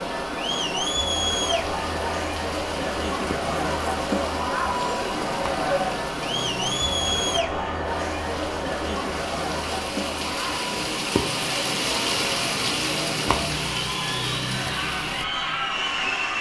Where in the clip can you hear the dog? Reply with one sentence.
The dog can't be heard in this clip.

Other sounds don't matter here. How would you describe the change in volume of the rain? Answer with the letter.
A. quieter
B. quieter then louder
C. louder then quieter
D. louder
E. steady
D.